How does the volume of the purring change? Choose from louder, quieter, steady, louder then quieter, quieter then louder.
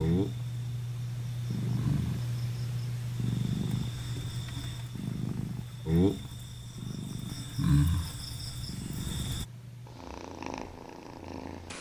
quieter.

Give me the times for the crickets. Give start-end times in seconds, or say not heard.
0.0-9.4.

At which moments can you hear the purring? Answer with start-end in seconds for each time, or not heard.
0.0-11.7.